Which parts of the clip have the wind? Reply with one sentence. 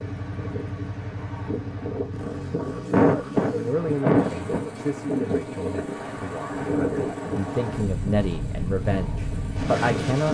You can hear the wind from 0.0 to 10.2 s.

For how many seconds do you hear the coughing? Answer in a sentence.
The coughing can be heard for 2 seconds in total.